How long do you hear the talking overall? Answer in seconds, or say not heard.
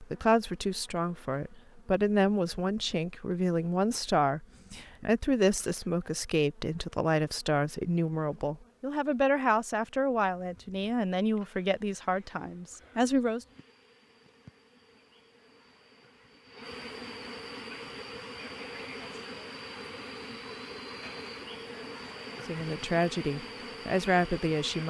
16 s.